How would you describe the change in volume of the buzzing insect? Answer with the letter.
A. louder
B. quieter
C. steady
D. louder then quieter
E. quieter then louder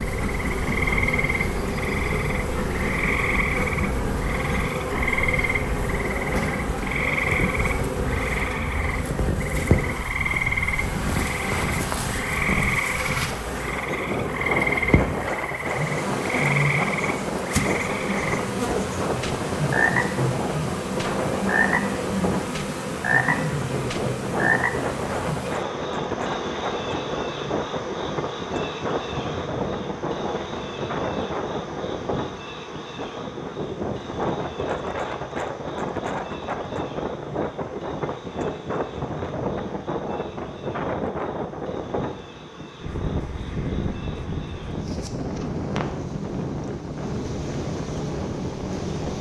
B.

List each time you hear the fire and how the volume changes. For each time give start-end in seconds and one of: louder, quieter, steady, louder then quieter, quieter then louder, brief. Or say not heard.
not heard.